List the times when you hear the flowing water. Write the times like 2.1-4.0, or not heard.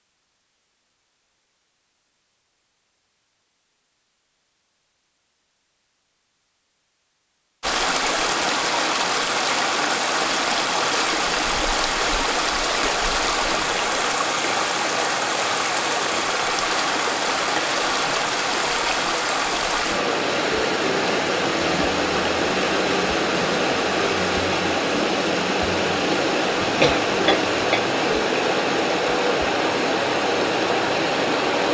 7.6-31.7.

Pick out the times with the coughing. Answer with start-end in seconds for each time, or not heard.
26.6-27.9.